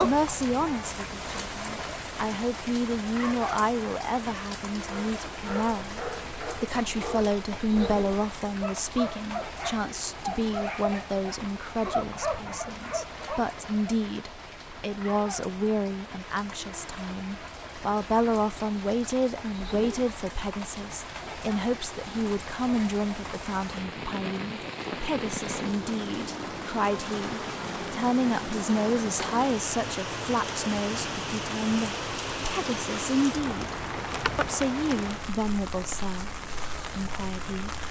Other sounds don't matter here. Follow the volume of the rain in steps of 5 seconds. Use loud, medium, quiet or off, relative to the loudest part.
loud, medium, medium, medium, medium, loud, loud, medium.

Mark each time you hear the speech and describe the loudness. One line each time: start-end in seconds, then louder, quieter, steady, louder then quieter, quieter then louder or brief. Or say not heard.
0.0-37.8 steady.